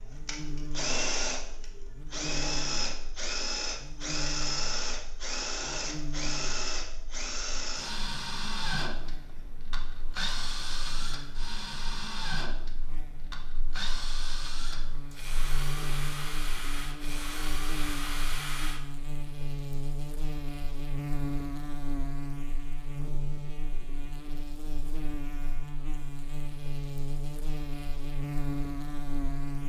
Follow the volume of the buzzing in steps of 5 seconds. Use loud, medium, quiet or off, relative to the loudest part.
medium, medium, quiet, loud, loud, loud.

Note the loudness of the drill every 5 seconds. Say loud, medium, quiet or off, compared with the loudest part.
loud, loud, medium, medium, off, off.